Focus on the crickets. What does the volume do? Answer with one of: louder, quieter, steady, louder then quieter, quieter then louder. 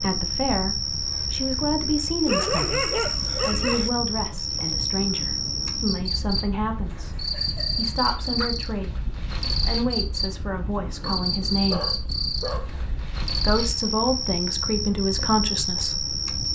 steady.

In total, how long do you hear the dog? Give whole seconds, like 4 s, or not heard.
5 s.